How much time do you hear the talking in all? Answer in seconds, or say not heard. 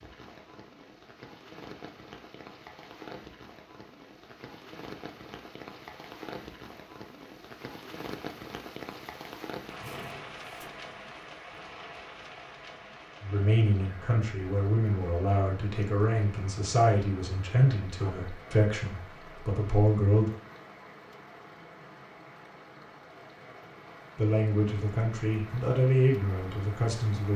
10 s.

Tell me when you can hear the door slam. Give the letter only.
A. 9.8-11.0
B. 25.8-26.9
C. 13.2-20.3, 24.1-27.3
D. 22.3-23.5
A.